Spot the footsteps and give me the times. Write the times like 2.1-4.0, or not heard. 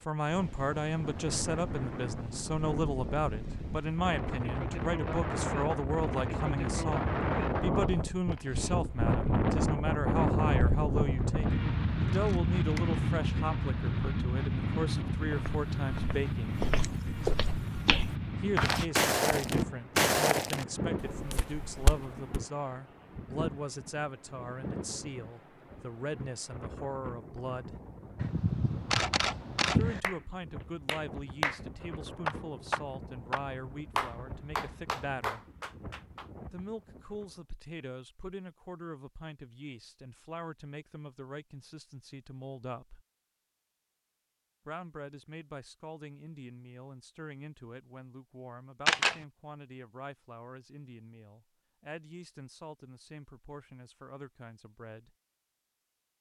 15.2-22.4.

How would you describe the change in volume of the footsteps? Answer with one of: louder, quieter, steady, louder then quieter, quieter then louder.
louder then quieter.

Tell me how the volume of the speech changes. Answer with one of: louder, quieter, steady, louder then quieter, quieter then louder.
quieter.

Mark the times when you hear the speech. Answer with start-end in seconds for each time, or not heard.
0.1-16.6, 18.4-27.8, 29.6-35.5, 36.5-43.0, 44.6-55.1.